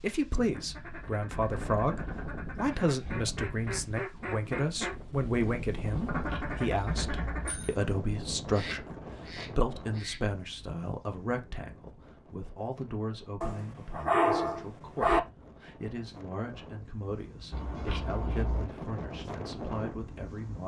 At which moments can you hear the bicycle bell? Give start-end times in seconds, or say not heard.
6.0-7.8, 17.5-18.7.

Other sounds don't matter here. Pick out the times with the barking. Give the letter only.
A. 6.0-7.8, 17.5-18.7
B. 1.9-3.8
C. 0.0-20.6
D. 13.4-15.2
D.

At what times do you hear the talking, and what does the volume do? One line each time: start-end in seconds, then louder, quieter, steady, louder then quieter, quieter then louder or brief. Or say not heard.
0.0-20.6 quieter.